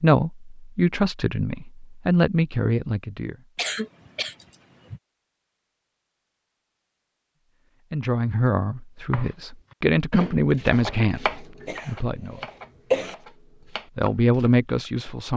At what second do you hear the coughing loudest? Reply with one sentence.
The loudest moment of the coughing is at 13 seconds.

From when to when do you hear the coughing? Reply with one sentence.
The coughing can be heard from 3.5 to 5.0 s and from 11.6 to 13.2 s.